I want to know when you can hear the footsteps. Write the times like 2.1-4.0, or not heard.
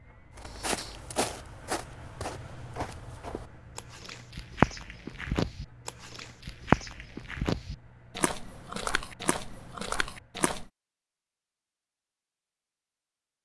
0.3-10.7.